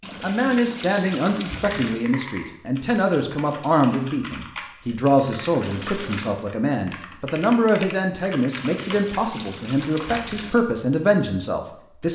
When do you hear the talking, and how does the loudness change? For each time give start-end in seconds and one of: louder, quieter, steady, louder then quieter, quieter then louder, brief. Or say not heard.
0.2-12.0 steady.